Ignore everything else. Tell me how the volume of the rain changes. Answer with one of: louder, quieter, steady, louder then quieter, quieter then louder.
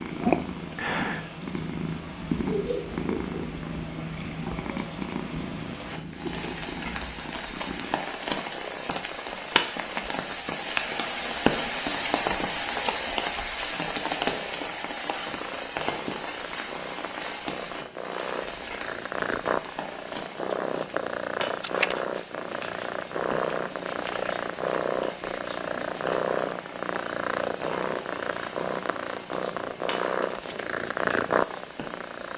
louder then quieter.